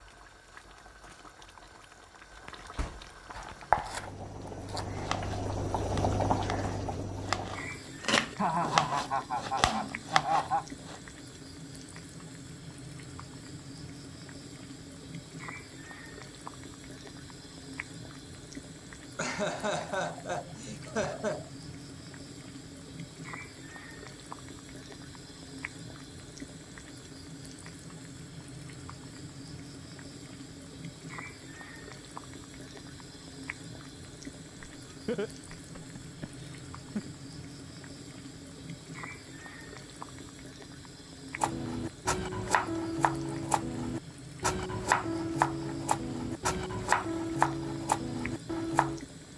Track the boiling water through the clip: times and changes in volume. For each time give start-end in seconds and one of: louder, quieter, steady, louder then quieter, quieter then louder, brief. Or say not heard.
0.0-49.3 quieter.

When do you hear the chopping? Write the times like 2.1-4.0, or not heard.
3.4-11.0, 41.4-49.0.